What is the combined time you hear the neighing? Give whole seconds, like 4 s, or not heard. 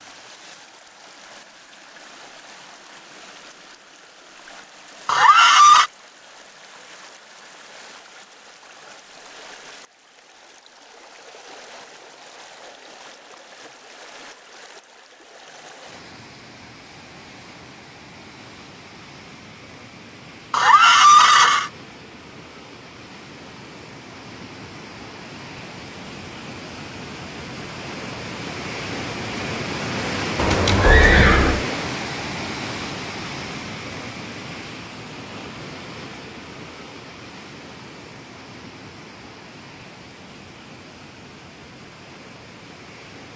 3 s.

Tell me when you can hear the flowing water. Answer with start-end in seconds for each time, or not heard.
0.0-43.3.